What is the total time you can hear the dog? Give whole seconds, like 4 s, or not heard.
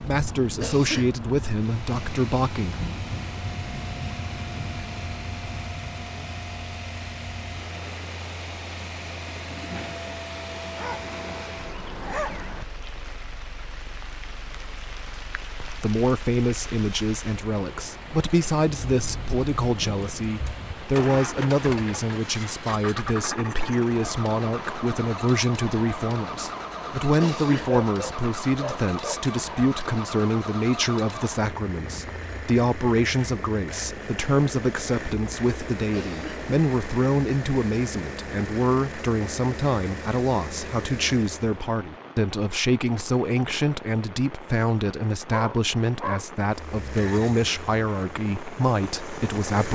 4 s.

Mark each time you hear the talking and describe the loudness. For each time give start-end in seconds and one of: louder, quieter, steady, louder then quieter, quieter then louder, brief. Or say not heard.
0.1-2.8 brief
15.6-49.7 steady.